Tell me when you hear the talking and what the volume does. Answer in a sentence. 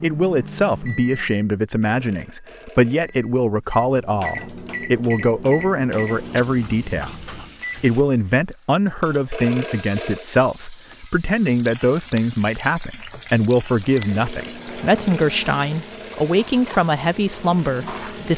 You can hear the talking from 0.0 to 18.3 s, at a steady volume.